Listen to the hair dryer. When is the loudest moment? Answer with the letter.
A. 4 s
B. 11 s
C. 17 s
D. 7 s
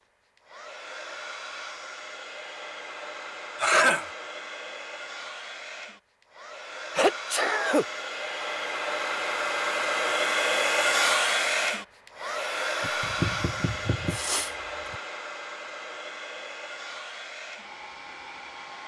B.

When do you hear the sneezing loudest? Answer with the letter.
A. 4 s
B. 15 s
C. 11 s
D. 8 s
A.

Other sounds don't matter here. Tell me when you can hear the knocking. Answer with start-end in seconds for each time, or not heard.
12.8-14.2.